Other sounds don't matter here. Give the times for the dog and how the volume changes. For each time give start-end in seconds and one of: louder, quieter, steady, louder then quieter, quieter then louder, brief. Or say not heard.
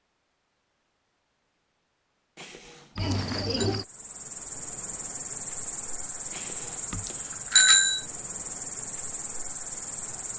not heard.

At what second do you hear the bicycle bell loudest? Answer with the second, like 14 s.
8 s.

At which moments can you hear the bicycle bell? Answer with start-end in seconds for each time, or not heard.
2.4-3.7, 6.3-8.0.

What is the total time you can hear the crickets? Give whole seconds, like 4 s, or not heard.
7 s.